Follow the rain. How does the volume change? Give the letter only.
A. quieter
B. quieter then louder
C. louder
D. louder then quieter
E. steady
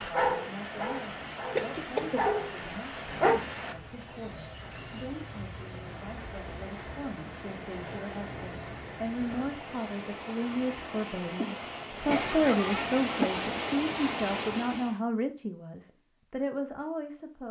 C.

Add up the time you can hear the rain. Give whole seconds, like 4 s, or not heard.
15 s.